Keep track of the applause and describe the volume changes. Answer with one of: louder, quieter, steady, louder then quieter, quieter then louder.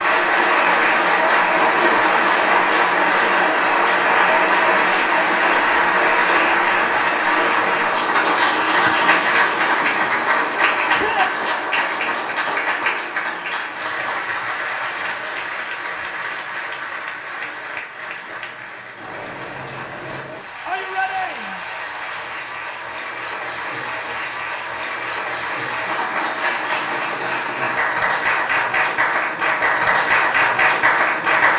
quieter then louder.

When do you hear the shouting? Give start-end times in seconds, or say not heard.
10.9-11.4, 20.6-21.6.